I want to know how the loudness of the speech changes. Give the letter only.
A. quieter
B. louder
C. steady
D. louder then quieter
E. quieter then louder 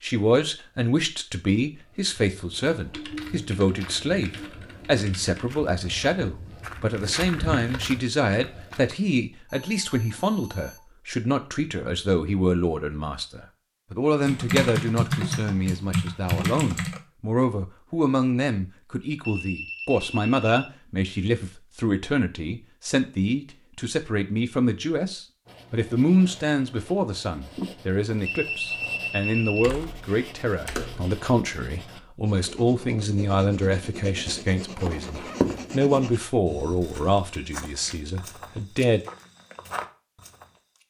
C.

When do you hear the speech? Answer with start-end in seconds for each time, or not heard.
0.0-39.0.